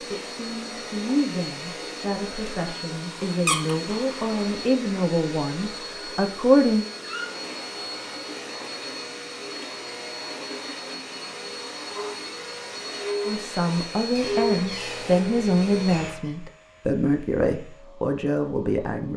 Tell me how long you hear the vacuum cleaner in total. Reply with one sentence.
You can hear the vacuum cleaner for 19 seconds altogether.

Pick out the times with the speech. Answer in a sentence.
The speech can be heard from 0.1 to 6.8 s and from 13.2 to 19.1 s.